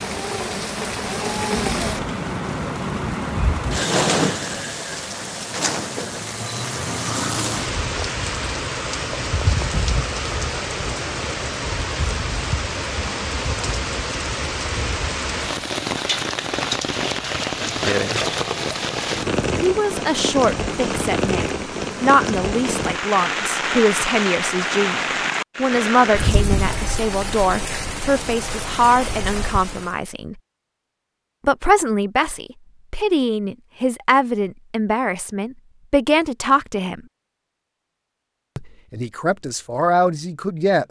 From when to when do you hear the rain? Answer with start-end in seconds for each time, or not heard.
0.0-29.9.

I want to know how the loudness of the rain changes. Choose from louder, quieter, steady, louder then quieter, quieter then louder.
steady.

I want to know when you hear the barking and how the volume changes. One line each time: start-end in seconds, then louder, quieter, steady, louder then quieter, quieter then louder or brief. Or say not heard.
not heard.